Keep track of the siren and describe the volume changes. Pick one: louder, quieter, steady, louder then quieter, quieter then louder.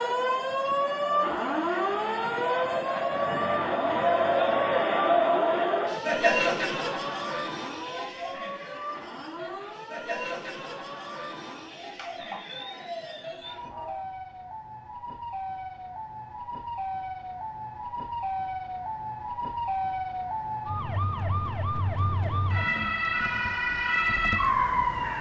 quieter then louder.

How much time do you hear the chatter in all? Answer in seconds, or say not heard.
14 s.